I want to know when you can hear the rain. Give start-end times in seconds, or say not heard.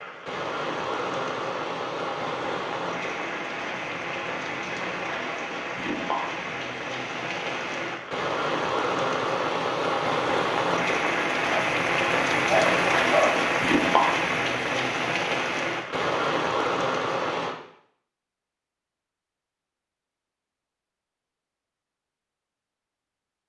0.0-17.6.